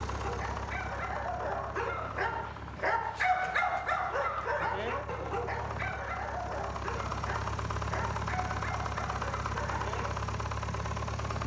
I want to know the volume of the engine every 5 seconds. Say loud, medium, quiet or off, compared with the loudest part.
medium, loud, loud.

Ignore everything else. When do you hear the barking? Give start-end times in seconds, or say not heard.
0.1-10.1.